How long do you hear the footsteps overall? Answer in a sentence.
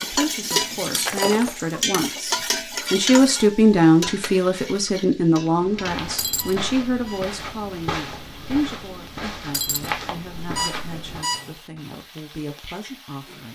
The footsteps can be heard for 6 seconds in total.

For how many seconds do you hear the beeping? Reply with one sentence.
The beeping can be heard for 3 seconds in total.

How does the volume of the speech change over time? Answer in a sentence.
The volume of the speech goes up, then down.